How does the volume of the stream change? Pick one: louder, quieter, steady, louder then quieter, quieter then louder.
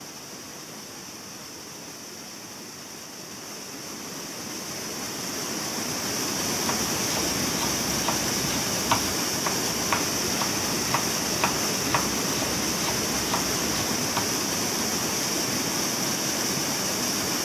louder.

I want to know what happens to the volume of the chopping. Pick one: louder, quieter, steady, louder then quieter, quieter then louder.
louder then quieter.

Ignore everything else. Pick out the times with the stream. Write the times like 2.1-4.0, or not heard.
0.0-17.4.